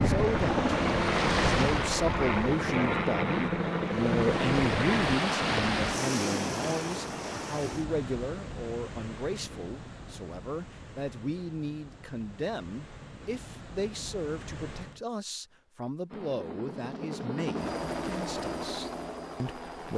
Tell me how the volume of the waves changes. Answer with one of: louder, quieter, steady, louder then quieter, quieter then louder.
quieter.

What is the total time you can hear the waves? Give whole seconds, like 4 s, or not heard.
15 s.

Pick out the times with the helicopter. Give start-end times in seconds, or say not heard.
0.0-5.2, 16.1-19.9.